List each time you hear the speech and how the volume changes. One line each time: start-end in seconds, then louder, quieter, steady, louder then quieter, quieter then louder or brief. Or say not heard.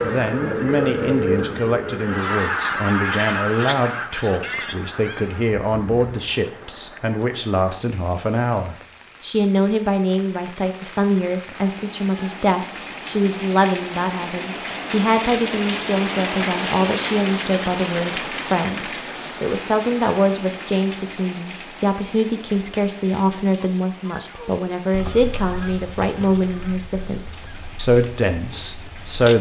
0.0-29.3 steady.